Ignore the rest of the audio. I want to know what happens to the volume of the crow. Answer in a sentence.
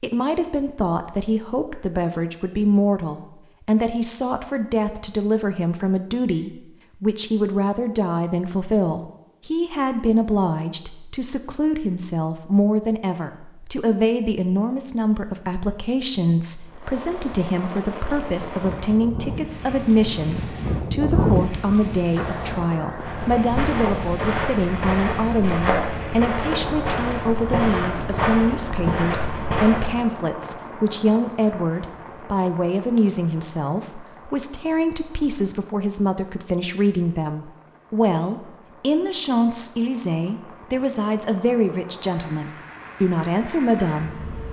The loudness of the crow goes up, then down.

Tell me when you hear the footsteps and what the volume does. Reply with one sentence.
The footsteps can be heard from 23.0 to 30.1 s, at a steady volume.